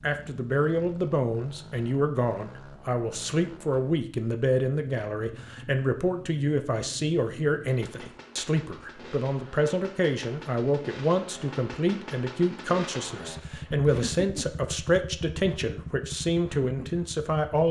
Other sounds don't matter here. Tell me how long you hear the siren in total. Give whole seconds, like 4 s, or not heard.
not heard.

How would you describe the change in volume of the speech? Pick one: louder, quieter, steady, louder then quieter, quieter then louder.
steady.